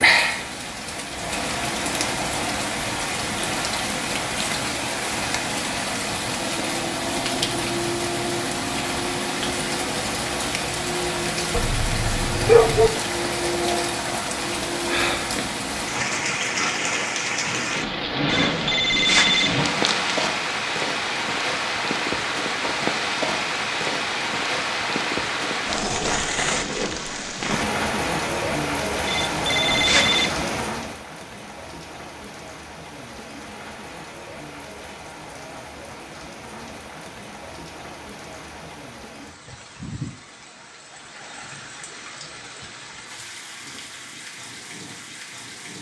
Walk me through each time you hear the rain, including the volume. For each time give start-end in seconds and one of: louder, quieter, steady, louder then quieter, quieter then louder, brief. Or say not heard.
0.0-45.7 quieter.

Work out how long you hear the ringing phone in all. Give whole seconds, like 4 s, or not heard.
3 s.